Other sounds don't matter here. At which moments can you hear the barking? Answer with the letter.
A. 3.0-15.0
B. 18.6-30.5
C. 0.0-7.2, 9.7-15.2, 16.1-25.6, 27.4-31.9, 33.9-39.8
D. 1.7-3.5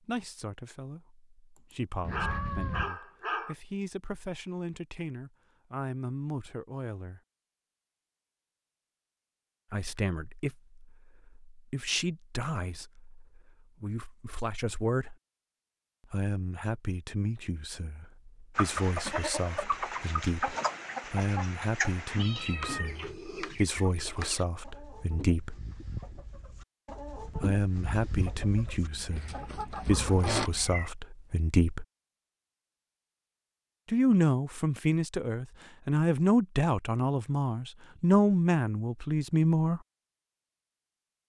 D.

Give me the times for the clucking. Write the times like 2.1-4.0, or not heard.
18.6-30.5.